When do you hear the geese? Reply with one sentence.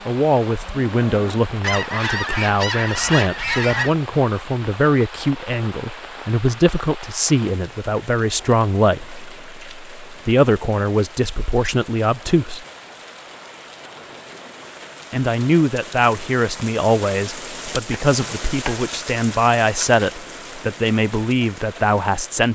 The geese can be heard from 1.6 to 4.0 s.